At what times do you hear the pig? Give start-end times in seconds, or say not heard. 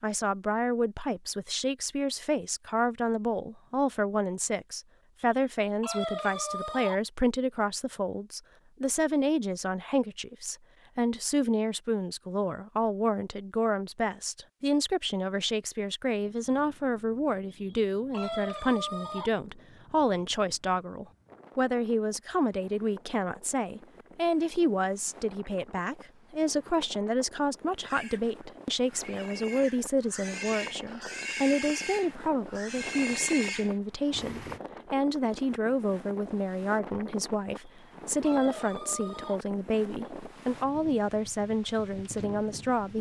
27.8-34.6.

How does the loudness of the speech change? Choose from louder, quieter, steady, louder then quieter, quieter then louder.
steady.